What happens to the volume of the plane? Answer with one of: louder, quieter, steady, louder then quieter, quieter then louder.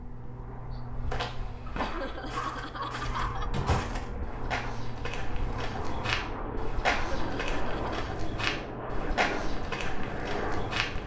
louder.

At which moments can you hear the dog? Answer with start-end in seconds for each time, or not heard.
1.6-3.9.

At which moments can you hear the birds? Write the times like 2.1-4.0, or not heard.
not heard.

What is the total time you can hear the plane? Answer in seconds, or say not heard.
11 s.